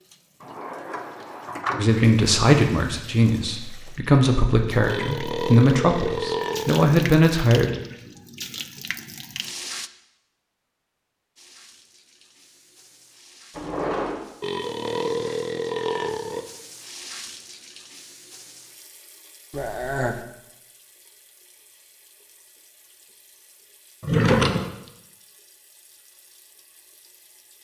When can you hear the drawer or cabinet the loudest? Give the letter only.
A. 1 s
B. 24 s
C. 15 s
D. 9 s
B.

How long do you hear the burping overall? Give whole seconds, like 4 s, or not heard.
5 s.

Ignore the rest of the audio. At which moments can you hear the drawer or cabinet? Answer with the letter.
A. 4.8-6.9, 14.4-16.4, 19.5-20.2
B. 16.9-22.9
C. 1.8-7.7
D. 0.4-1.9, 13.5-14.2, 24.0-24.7
D.